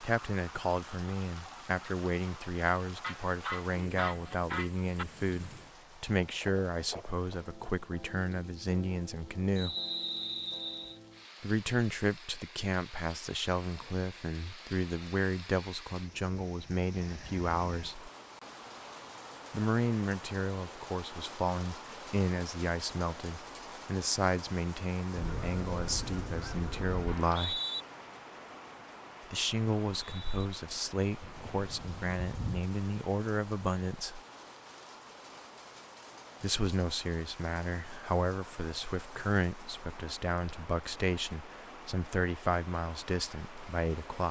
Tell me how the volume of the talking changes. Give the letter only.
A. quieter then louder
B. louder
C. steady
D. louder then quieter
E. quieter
C.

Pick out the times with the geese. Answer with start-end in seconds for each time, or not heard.
3.0-5.0, 25.1-27.1, 31.2-32.6.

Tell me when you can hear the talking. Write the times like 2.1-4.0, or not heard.
0.0-9.8, 11.4-18.1, 19.5-27.6, 29.3-34.2, 36.4-44.2.